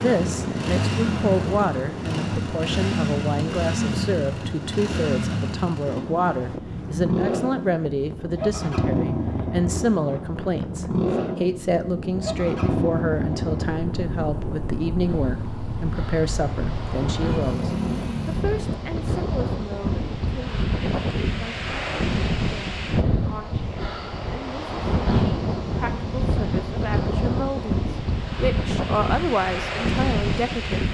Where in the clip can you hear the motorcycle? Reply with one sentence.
The motorcycle can be heard from 0.0 to 18.4 s.